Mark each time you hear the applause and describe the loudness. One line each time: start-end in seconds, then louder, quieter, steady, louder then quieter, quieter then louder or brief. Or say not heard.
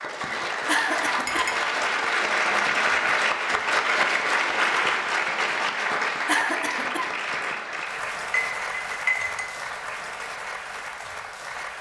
0.0-11.7 quieter.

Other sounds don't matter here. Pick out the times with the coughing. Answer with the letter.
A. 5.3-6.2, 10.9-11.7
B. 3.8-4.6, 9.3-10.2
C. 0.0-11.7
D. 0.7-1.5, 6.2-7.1
D.